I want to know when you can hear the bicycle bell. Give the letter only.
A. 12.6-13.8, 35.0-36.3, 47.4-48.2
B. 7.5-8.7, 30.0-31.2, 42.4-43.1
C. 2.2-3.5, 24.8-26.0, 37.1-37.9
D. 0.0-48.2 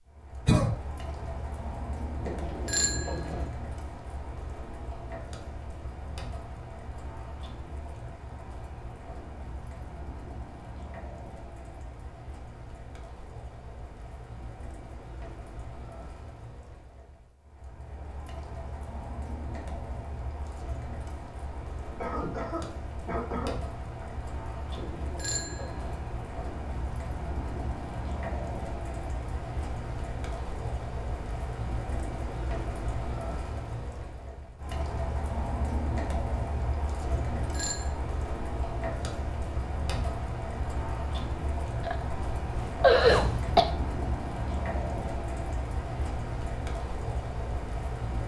C.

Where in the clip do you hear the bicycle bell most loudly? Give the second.
3 s.